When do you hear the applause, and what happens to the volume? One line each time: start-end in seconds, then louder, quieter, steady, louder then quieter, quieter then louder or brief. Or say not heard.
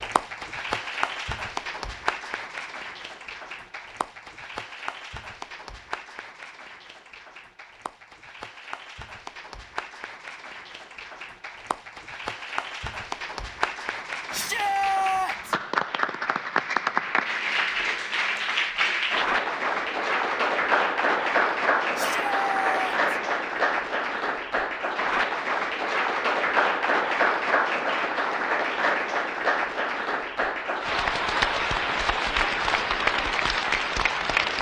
0.0-34.5 louder.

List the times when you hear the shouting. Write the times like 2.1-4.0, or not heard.
14.3-15.6, 21.9-23.0.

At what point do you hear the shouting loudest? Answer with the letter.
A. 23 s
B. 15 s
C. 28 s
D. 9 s
B.